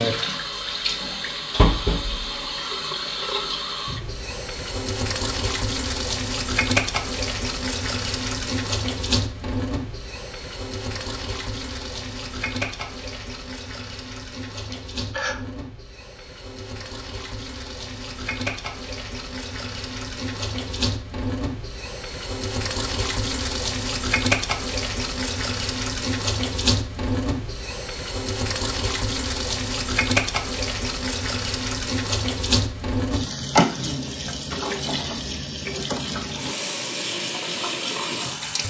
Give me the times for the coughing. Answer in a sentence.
You can hear the coughing from 14.7 to 15.3 s.